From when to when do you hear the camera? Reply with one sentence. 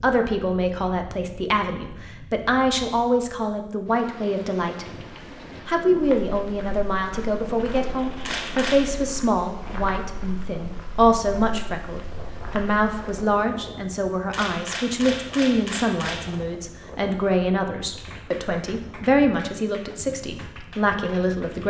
The camera can be heard from 8.2 to 8.9 s and from 14.3 to 16.4 s.